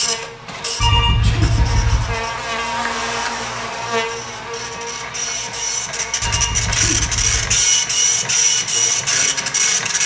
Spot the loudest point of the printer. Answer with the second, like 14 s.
8 s.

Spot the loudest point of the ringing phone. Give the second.
1 s.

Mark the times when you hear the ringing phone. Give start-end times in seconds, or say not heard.
0.8-2.2, 6.2-7.6.